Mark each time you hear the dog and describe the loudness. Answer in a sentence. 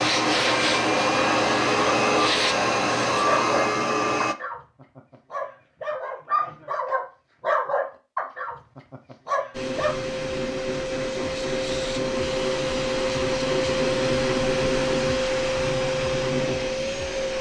The dog can be heard from 3.2 to 8.6 s, getting louder; and briefly from 9.2 to 9.9 s.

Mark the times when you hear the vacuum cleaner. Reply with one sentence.
The vacuum cleaner can be heard from 0.0 to 4.3 s and from 9.5 to 17.3 s.